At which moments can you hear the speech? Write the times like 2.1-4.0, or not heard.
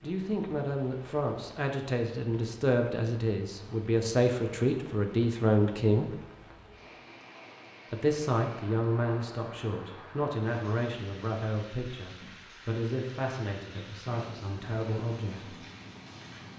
0.0-6.1, 7.9-15.6.